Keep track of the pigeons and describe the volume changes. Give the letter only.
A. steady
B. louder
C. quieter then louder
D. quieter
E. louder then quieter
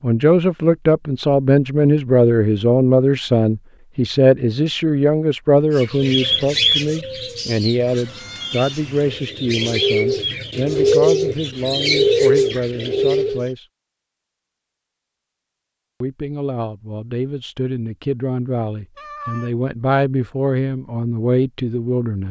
C.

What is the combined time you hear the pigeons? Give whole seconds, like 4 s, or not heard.
8 s.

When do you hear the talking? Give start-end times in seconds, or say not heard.
0.0-13.7, 16.0-22.2.